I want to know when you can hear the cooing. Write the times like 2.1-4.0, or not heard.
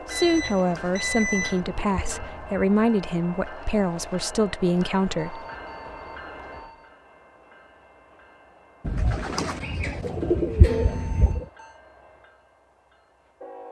0.2-2.7, 8.8-11.4.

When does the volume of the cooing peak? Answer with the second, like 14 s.
10 s.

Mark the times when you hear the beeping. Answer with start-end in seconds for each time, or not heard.
0.1-1.6, 5.2-6.9, 10.7-11.8.